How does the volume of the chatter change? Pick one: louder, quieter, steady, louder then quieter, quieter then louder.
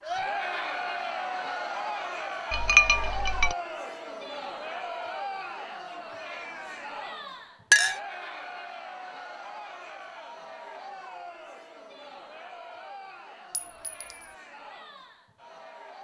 quieter.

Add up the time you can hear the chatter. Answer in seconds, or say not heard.
16 s.